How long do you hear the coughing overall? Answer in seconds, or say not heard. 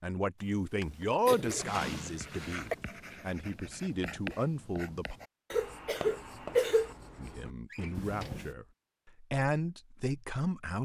3 s.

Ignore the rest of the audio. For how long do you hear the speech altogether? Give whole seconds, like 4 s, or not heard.
9 s.